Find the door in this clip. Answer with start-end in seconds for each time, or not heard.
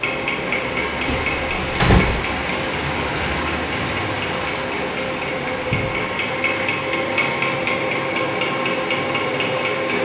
1.1-2.1.